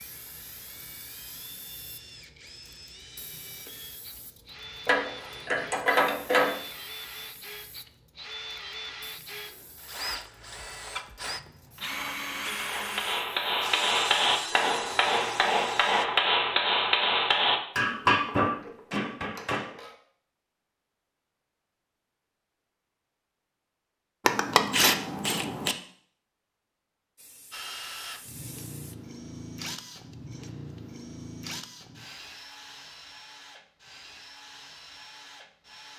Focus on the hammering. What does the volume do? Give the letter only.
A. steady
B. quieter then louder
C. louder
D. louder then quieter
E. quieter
A.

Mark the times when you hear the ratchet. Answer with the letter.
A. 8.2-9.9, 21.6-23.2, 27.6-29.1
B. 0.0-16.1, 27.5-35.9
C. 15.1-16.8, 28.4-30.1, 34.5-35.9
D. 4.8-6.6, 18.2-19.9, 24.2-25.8
D.